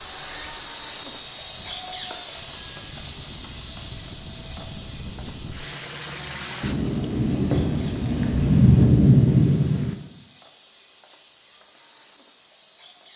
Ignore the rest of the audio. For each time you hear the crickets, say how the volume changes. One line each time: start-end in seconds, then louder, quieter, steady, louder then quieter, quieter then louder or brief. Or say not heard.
0.0-13.1 quieter.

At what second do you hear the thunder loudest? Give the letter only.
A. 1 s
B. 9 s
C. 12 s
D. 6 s
B.